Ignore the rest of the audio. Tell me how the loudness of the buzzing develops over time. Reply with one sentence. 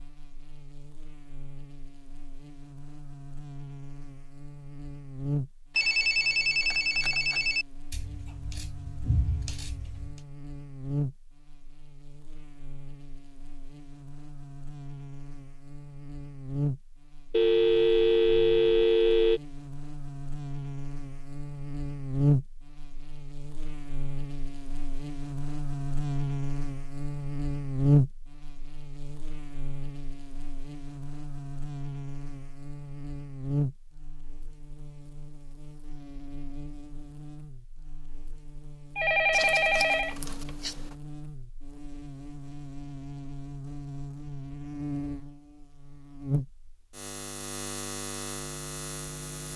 The volume of the buzzing goes up, then down.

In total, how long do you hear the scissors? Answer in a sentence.
The scissors can be heard for 4 seconds in total.